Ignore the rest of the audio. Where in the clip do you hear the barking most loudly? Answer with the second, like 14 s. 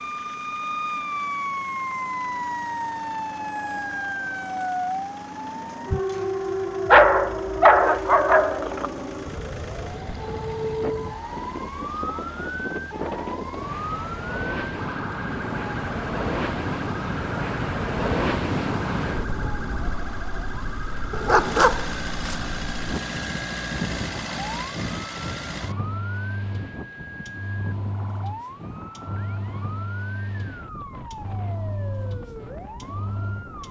7 s.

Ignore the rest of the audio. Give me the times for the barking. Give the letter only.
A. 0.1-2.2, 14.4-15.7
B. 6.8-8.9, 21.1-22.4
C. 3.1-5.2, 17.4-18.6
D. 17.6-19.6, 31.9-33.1
B.